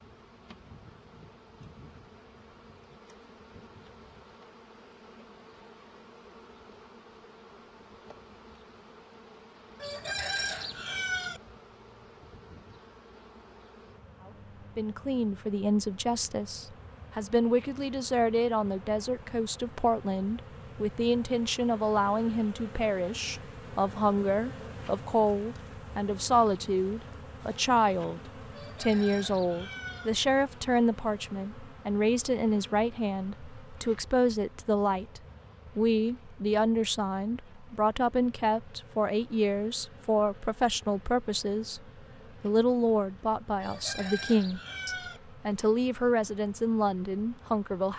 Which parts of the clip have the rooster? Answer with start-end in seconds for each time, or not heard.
9.8-11.4, 28.5-30.1, 43.6-45.2.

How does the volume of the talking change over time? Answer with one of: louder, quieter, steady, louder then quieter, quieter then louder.
steady.